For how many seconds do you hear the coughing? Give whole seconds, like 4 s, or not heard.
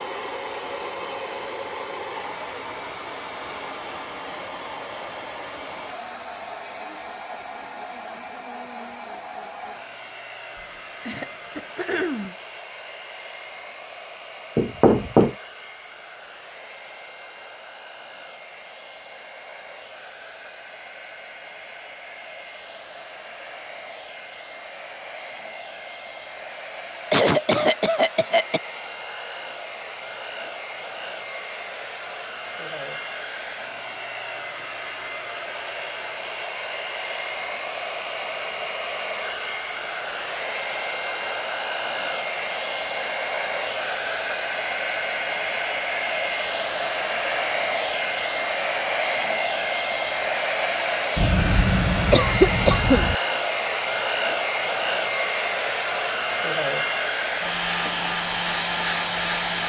5 s.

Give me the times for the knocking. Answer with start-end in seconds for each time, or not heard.
14.6-15.3.